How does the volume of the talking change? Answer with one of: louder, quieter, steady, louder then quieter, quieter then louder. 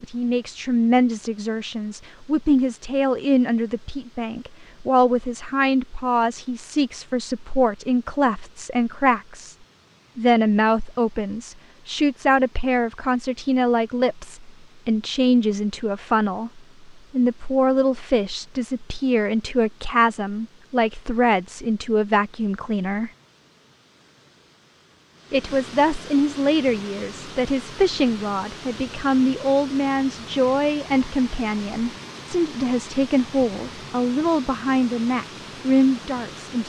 steady.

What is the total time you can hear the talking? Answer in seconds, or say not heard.
34 s.